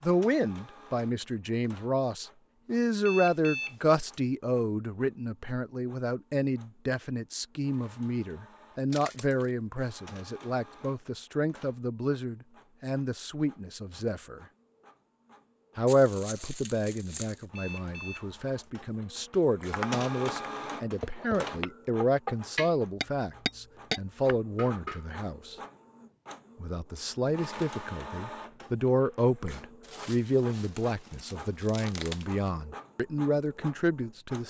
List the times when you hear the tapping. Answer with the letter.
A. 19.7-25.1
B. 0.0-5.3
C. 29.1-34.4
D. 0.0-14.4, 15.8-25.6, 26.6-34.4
A.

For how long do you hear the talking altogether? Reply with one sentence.
The talking can be heard for 32 seconds in total.